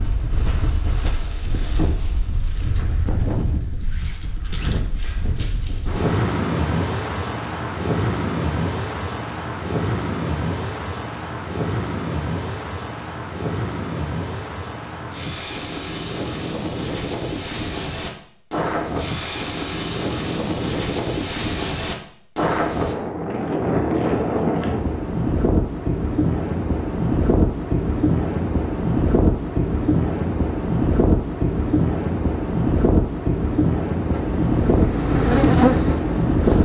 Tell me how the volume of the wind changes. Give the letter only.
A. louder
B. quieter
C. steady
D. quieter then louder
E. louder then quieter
A.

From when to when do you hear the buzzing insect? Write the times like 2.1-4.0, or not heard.
34.0-36.6.